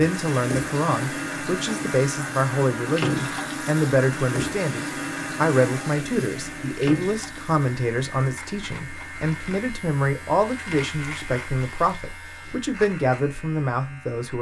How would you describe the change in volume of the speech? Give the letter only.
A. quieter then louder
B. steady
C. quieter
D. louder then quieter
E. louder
B.